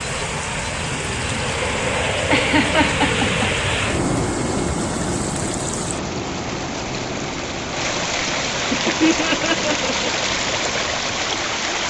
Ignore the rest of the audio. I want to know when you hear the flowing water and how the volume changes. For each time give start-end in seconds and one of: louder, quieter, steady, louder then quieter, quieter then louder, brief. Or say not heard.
0.0-11.8 louder.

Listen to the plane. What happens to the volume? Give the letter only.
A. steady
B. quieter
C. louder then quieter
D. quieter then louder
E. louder
B.